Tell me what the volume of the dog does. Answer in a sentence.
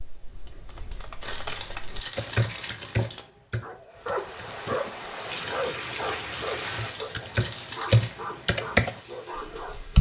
The volume of the dog goes down.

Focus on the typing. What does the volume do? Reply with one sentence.
The volume of the typing goes up.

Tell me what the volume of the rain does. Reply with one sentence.
The volume of the rain goes down.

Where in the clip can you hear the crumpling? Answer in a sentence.
You can hear the crumpling from 1.2 to 3.2 s and from 6.6 to 8.2 s.